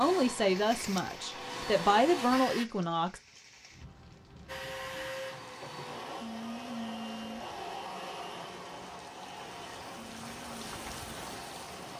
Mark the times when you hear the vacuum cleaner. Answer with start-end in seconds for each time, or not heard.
0.0-2.6, 4.5-11.9.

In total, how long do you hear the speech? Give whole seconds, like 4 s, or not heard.
3 s.